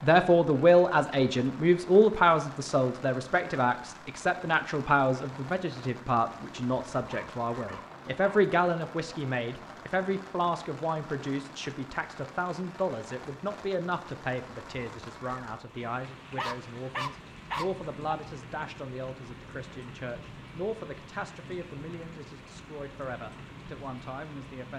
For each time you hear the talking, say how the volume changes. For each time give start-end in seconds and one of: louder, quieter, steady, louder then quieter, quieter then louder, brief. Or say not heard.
0.0-24.7 quieter.